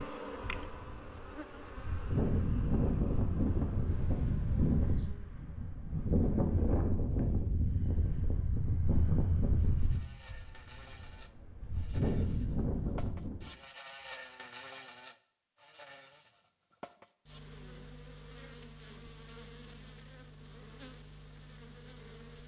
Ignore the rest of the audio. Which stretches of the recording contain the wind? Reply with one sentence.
The wind can be heard from 0.0 to 13.5 s.